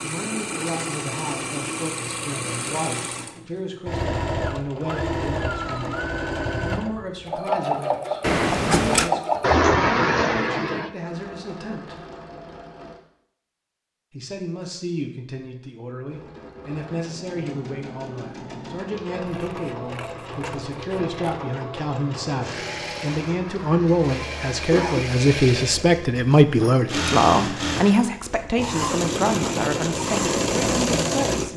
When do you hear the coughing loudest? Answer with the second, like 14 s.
10 s.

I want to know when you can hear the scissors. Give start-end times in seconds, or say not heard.
8.2-9.1, 19.2-21.4.